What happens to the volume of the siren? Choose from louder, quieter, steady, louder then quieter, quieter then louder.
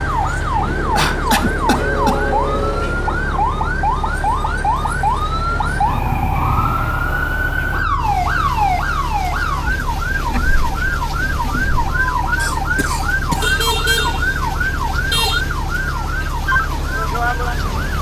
steady.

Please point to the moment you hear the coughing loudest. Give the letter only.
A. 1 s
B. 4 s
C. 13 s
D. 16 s
A.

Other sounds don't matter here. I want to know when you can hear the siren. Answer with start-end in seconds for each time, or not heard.
0.0-17.9.